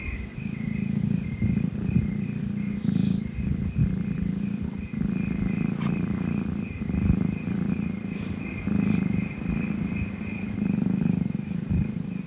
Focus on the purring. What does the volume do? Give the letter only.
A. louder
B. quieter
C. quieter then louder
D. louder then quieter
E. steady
E.